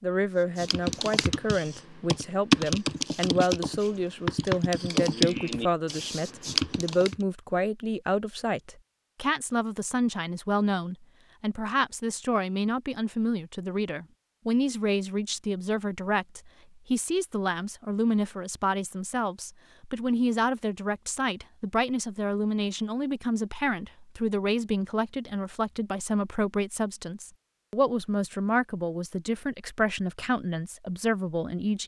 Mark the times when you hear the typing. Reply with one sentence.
The typing can be heard from 0.6 to 7.2 s.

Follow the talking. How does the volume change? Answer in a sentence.
The loudness of the talking stays about the same.